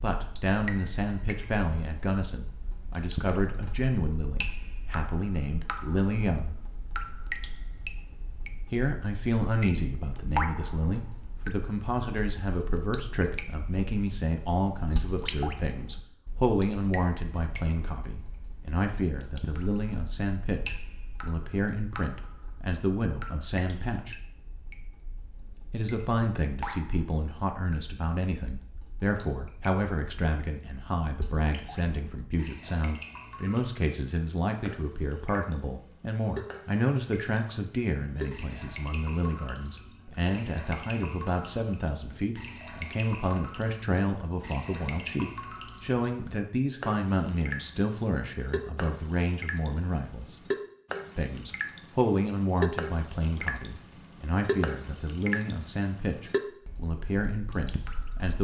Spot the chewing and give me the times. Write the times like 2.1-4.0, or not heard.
not heard.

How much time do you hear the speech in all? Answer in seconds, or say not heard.
54 s.